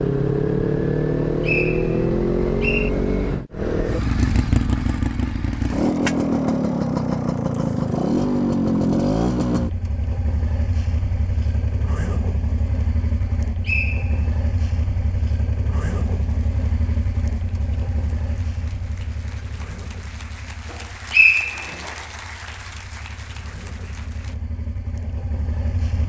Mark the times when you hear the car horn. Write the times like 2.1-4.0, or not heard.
not heard.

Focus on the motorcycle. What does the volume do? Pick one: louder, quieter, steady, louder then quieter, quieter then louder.
quieter.